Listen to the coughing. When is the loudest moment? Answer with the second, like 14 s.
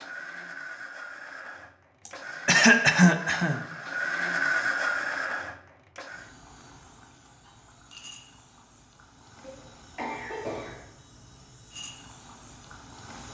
3 s.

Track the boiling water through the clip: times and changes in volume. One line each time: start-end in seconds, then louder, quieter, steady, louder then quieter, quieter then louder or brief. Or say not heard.
6.0-13.3 louder.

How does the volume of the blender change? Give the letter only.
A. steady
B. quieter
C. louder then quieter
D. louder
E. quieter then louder
D.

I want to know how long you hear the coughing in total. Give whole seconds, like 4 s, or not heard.
3 s.